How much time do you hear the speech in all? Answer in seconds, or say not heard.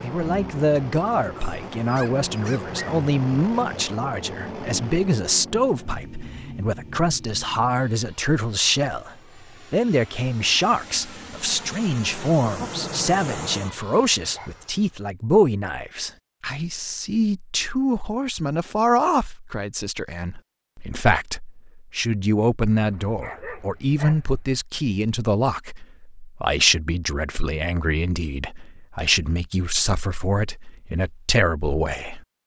32 s.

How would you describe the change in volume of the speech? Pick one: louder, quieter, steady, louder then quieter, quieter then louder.
steady.